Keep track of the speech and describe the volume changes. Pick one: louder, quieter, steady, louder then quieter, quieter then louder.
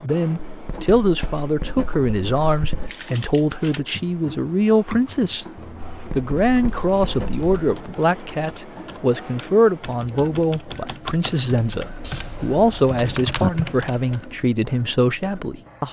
steady.